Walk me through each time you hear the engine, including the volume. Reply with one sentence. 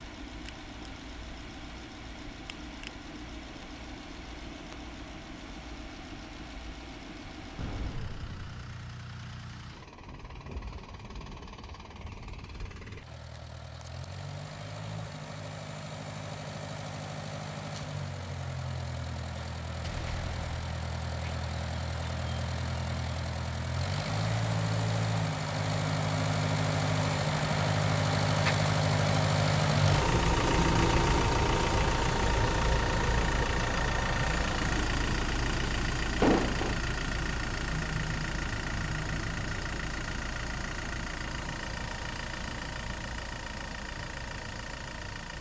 The engine can be heard from 0.0 to 45.3 s, getting louder then quieter.